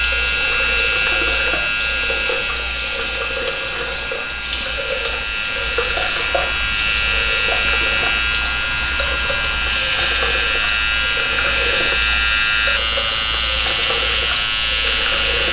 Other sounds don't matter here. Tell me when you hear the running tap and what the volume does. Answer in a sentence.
You can hear the running tap from 0.0 to 15.4 s, at a steady volume.